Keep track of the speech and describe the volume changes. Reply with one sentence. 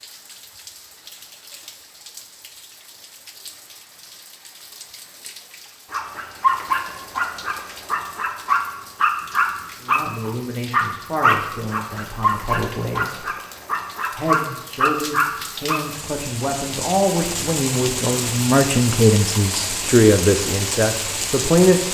The volume of the speech goes up.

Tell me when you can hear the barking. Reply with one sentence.
The barking can be heard from 5.9 to 15.8 s.